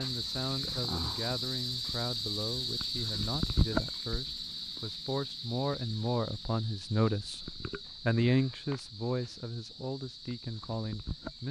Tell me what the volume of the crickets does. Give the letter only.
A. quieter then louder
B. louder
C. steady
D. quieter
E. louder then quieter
D.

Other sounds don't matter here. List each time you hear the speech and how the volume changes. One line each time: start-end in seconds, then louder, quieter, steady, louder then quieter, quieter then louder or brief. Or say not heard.
0.0-11.4 louder then quieter.